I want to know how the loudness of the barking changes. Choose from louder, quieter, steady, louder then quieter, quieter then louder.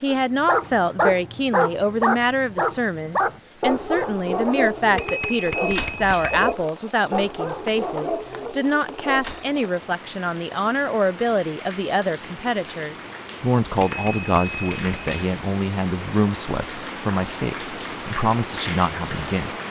quieter.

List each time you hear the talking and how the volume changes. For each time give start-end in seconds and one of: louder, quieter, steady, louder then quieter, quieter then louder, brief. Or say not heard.
0.0-19.5 steady.